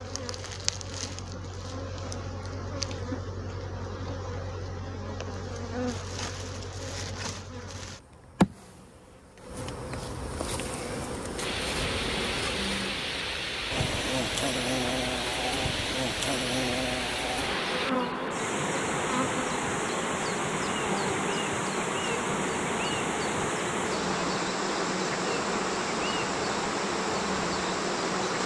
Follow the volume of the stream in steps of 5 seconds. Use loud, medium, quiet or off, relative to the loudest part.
off, off, loud, loud, loud, loud.